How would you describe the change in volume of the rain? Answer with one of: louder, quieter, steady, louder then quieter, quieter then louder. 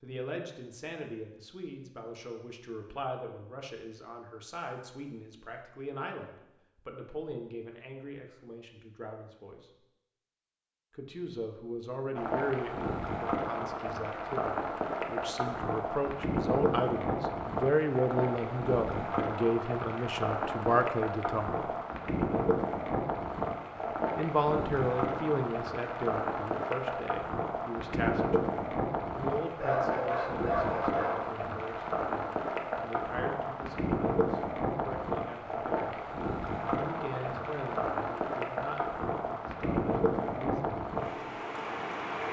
steady.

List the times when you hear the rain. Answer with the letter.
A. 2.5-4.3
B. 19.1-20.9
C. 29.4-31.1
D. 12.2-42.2
D.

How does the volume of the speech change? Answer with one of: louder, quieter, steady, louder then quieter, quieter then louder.
louder then quieter.